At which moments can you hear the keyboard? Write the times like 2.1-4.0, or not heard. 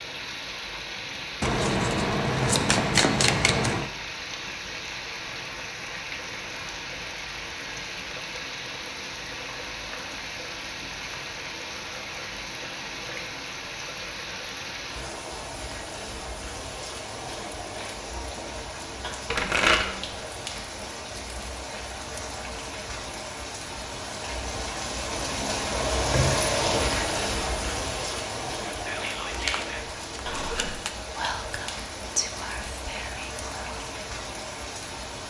not heard.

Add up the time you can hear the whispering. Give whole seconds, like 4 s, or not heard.
5 s.